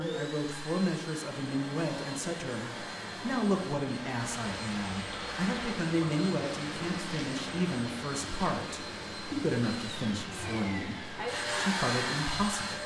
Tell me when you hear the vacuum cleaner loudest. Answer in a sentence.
The loudest moment of the vacuum cleaner is at 12 seconds.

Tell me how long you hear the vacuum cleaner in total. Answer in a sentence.
The vacuum cleaner can be heard for 13 seconds in total.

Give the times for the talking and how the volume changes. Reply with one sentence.
You can hear the talking from 0.0 to 12.8 s, at a steady volume.